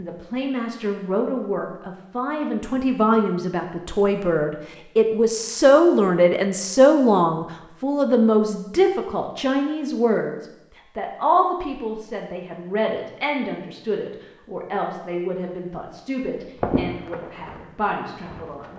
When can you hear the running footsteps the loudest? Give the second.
17 s.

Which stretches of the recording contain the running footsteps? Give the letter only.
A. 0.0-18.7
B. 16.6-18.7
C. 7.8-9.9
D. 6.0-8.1
B.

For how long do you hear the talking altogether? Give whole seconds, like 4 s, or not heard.
19 s.